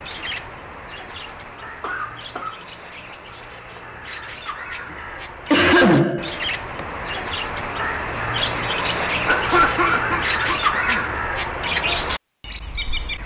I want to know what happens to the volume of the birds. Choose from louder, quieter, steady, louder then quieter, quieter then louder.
louder.